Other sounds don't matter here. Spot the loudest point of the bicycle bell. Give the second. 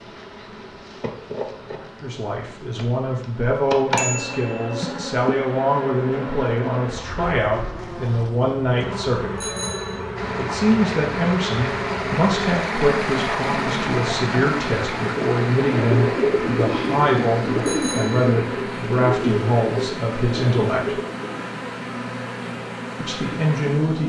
4 s.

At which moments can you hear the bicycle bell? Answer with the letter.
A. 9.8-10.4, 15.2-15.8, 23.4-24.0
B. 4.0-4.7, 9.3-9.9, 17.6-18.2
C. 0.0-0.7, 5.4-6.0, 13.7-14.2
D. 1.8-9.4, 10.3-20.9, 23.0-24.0
B.